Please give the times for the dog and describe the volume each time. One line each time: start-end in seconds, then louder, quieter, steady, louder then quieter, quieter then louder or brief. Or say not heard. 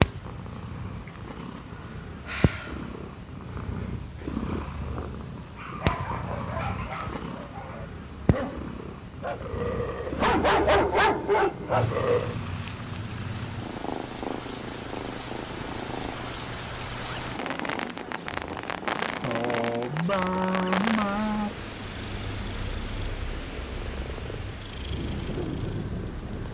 5.5-12.3 quieter then louder.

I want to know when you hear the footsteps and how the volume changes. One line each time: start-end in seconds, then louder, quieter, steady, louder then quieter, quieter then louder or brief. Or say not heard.
not heard.